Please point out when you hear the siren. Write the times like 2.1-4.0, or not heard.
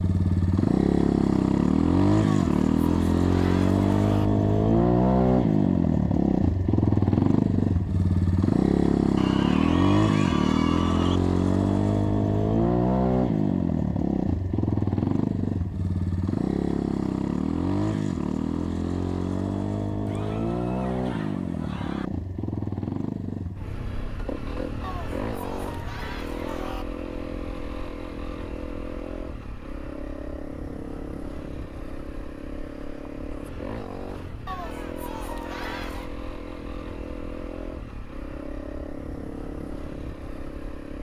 not heard.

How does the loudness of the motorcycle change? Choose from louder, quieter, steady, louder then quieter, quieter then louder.
quieter.